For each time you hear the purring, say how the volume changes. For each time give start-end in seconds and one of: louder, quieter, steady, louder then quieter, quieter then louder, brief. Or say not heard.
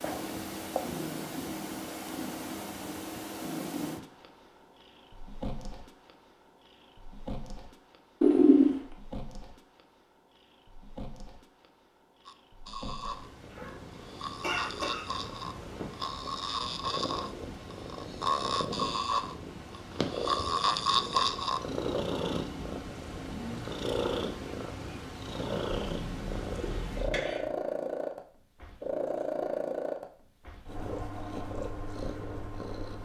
0.0-32.9 quieter then louder.